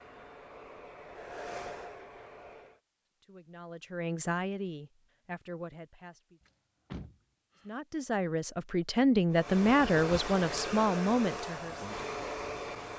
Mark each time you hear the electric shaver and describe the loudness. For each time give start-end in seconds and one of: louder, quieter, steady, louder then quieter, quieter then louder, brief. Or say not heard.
not heard.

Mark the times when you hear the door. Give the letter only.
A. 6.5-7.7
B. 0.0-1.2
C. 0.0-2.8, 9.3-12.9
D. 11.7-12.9
A.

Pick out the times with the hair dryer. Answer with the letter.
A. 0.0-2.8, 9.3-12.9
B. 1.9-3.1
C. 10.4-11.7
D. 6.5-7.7
A.